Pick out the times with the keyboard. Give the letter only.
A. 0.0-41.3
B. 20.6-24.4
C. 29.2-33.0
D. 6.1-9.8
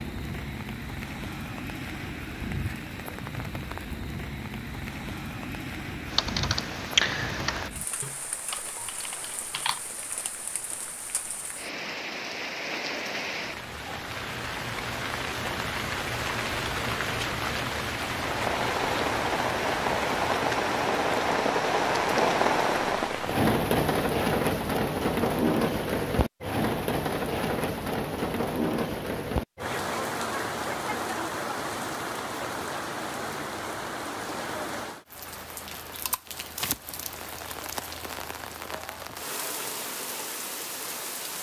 D.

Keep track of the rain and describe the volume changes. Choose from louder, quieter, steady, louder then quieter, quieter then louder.
louder then quieter.